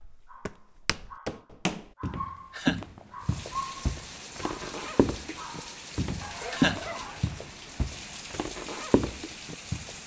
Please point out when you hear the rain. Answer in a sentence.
The rain can be heard from 3.2 to 10.0 s.